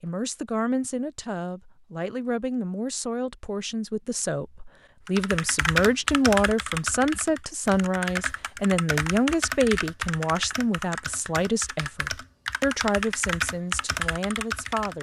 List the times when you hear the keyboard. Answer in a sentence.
The keyboard can be heard from 5.0 to 14.9 s.